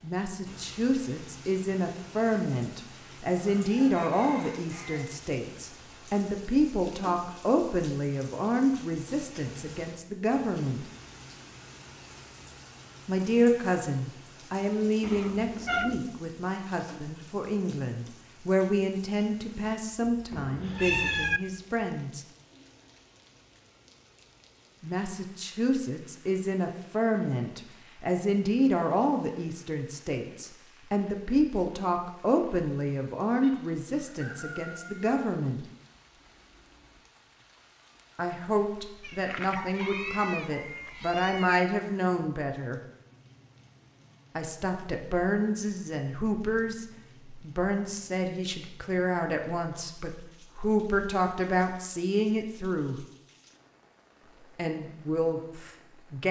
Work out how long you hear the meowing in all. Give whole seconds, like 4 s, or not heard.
5 s.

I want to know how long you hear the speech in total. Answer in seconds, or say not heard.
46 s.